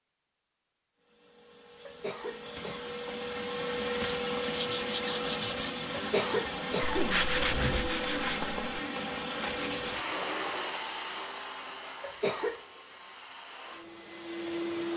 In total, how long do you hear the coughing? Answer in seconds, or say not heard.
4 s.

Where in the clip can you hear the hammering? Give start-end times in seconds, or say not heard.
not heard.